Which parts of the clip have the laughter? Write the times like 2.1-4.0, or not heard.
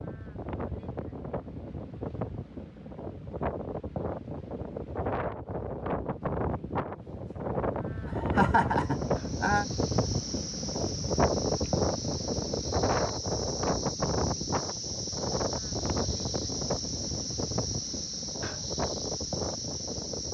8.1-9.7.